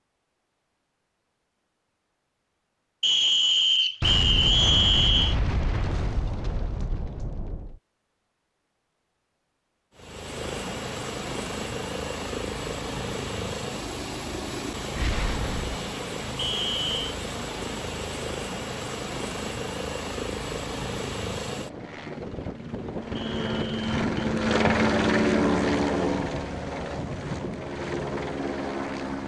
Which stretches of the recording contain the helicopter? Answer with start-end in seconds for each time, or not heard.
9.9-29.2.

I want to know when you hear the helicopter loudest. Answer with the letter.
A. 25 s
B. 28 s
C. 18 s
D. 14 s
A.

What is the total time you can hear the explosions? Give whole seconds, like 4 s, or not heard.
5 s.